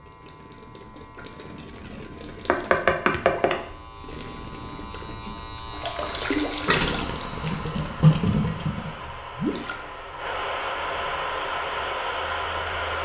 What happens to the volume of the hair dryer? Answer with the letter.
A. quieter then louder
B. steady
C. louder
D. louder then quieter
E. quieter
C.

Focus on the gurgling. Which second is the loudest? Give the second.
8 s.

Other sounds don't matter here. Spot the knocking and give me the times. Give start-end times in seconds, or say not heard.
2.5-3.6.